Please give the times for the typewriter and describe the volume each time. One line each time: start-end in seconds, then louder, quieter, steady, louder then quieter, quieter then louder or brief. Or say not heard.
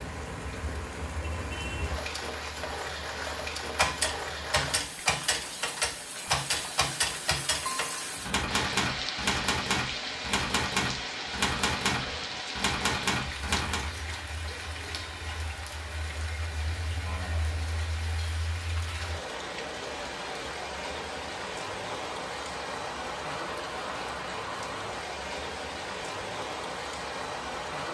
3.8-13.9 steady.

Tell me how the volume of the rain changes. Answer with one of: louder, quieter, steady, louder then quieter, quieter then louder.
steady.